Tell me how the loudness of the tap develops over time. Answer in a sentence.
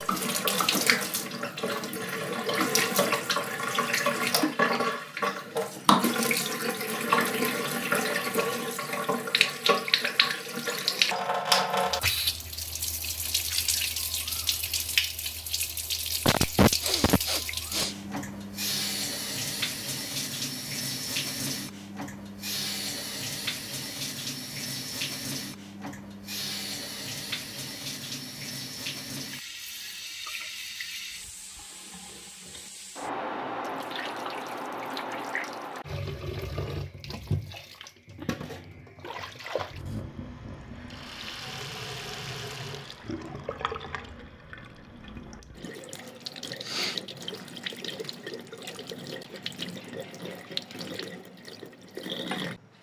The volume of the tap goes down.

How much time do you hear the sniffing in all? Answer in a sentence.
The sniffing can be heard for 3 seconds in total.